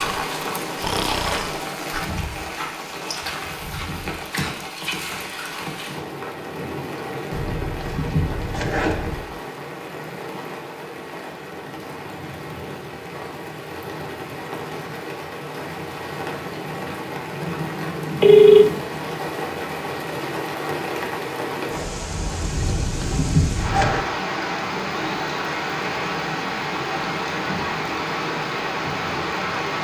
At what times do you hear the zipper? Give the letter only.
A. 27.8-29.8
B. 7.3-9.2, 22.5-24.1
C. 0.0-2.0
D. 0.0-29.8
B.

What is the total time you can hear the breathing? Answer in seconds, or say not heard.
2 s.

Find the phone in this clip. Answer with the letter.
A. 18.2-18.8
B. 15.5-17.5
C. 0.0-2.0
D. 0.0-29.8
A.